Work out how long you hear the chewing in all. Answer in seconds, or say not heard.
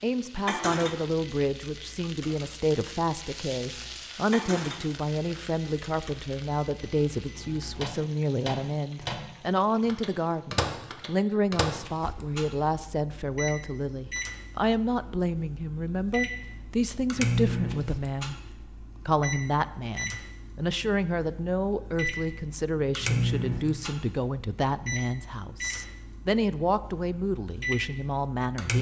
not heard.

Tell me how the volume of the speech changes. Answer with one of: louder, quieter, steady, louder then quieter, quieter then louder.
steady.